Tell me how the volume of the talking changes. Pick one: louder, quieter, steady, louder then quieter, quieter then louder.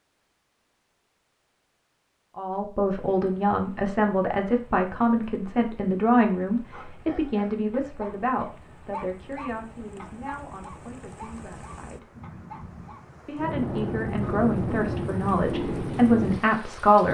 quieter then louder.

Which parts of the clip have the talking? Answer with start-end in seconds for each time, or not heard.
2.4-12.1, 13.2-17.0.